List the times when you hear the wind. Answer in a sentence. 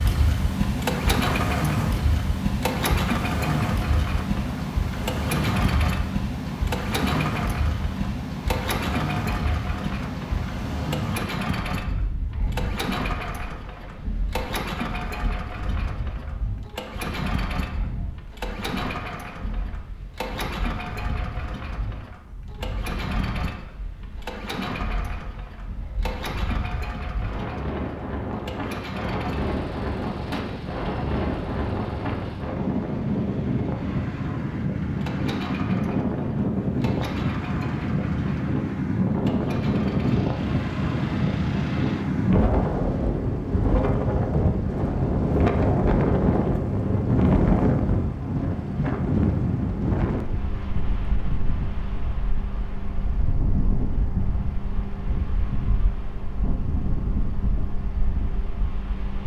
You can hear the wind from 0.0 to 59.2 s.